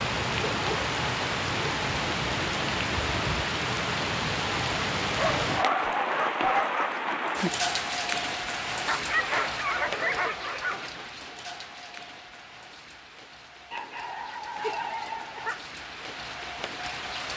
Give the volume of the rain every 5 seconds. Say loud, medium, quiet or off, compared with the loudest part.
loud, loud, quiet, medium.